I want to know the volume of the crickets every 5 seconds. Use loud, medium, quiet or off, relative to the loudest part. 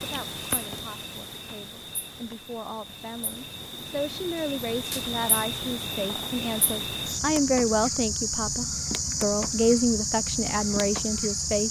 medium, loud, loud.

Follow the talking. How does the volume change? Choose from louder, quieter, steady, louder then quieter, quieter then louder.
louder.